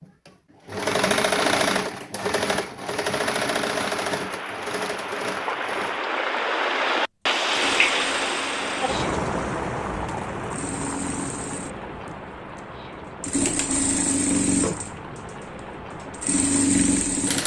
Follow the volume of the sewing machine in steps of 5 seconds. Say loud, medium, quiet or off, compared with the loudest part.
loud, quiet, loud, loud.